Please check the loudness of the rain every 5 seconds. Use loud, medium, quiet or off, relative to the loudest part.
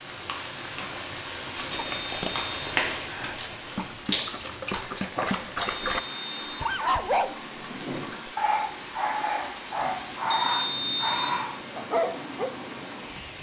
loud, medium, medium.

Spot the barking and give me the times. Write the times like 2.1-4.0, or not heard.
1.6-12.5.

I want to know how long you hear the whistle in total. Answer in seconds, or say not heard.
3 s.